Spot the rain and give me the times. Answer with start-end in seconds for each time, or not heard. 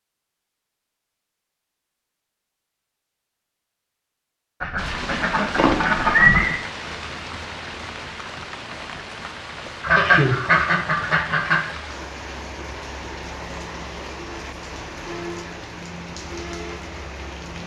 4.8-17.6.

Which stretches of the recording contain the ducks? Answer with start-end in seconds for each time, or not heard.
4.6-6.6, 9.8-11.6.